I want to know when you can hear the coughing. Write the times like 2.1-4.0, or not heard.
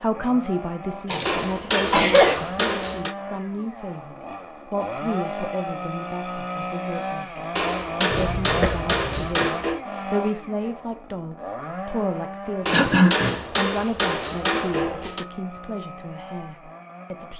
1.1-2.4, 8.1-9.4, 12.7-13.4.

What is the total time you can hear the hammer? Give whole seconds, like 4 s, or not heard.
7 s.